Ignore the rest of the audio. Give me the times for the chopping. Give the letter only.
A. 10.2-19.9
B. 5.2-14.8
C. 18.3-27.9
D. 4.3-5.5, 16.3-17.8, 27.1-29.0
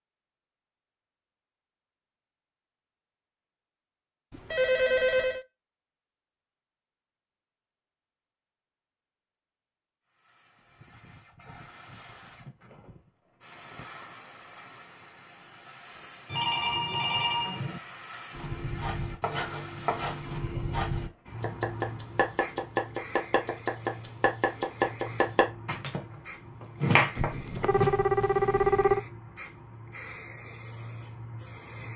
C.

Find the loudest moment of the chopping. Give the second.
27 s.